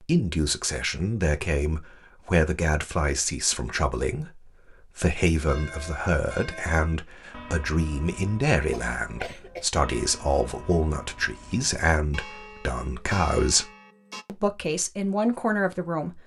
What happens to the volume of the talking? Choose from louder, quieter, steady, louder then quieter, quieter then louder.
steady.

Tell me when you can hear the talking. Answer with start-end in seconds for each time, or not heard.
0.0-16.2.